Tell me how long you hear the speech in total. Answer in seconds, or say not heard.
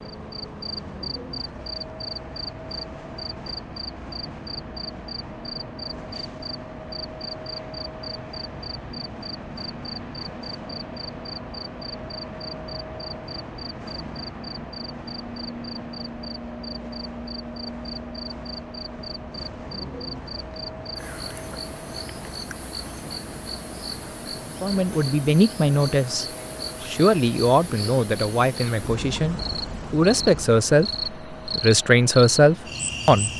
9 s.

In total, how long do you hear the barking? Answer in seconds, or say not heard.
not heard.